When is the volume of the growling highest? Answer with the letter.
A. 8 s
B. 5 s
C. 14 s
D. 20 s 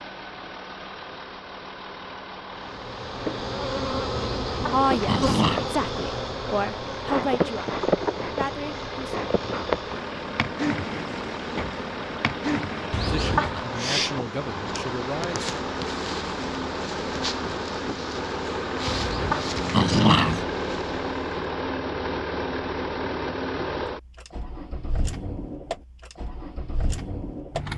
D.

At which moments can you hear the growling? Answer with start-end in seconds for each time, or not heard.
4.2-5.7, 12.9-13.6, 18.9-20.4.